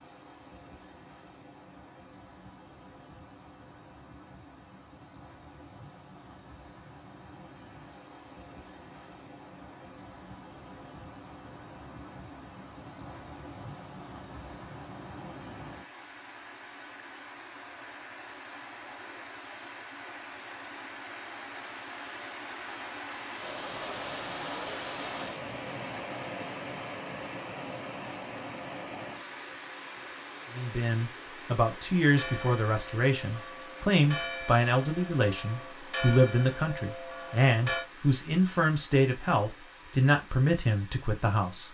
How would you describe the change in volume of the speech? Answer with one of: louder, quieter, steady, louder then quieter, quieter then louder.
steady.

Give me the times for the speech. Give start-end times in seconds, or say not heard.
30.6-41.6.